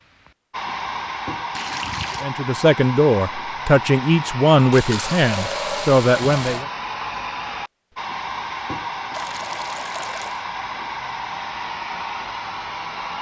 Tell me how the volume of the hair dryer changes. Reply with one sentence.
The loudness of the hair dryer stays about the same.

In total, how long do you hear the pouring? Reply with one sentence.
The pouring can be heard for 4 seconds in total.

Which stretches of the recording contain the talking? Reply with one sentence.
The talking can be heard from 2.2 to 6.7 s.